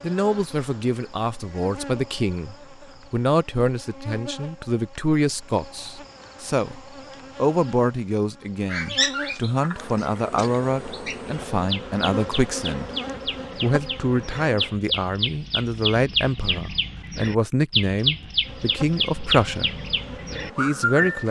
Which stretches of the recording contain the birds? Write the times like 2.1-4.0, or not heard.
8.7-21.2.